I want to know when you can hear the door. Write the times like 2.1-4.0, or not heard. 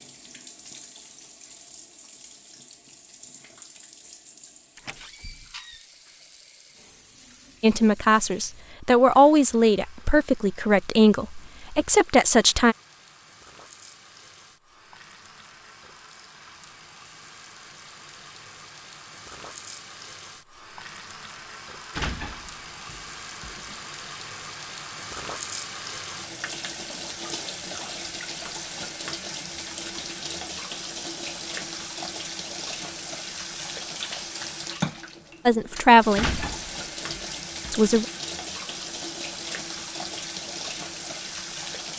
4.8-5.8, 21.9-23.8, 36.1-37.9.